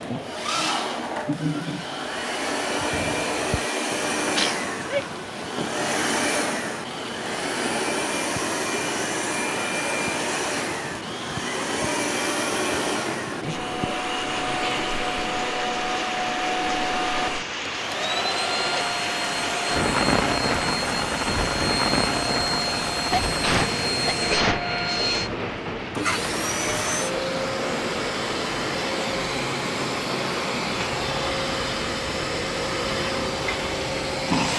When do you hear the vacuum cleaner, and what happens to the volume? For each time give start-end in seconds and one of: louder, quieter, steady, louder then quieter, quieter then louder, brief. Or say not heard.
0.0-34.5 steady.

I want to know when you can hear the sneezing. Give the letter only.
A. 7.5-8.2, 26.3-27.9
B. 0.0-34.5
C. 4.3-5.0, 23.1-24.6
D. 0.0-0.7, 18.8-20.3
C.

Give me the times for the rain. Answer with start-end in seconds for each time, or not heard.
0.0-34.5.